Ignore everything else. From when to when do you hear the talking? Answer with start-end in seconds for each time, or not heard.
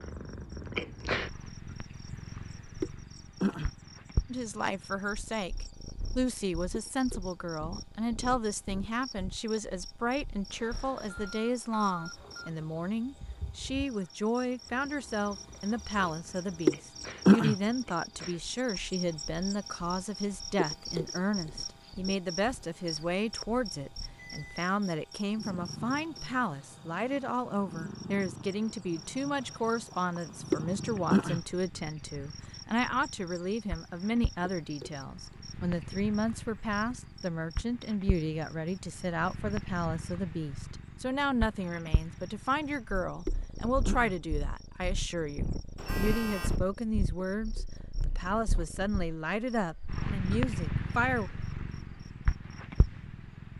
4.3-51.3.